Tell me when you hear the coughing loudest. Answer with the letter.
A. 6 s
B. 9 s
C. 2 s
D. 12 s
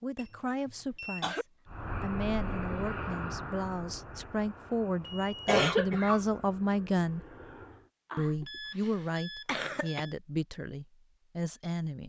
A.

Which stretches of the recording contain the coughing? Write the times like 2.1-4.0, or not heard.
0.7-1.4, 5.5-6.2, 8.1-10.0.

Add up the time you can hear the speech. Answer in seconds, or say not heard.
11 s.